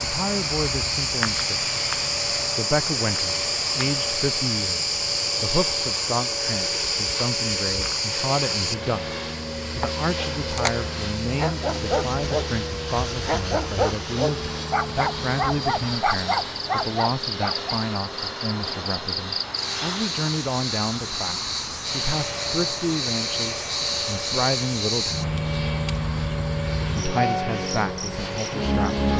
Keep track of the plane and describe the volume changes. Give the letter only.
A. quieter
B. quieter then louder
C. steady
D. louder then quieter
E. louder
C.